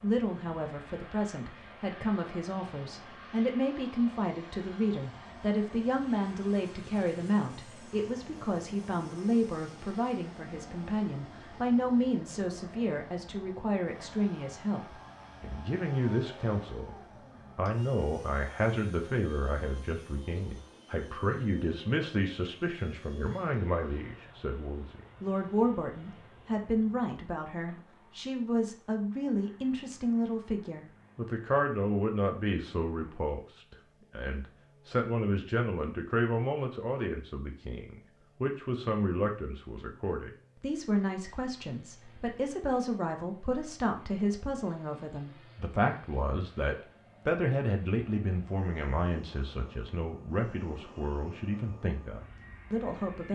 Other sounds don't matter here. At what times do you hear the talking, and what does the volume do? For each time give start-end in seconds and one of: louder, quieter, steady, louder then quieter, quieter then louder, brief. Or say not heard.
0.0-16.9 steady
17.6-53.3 steady.